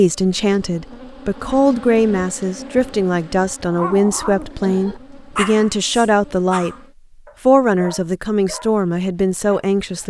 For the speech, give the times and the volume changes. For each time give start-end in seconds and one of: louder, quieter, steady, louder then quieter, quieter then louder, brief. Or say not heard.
0.0-6.8 steady
7.5-10.0 brief.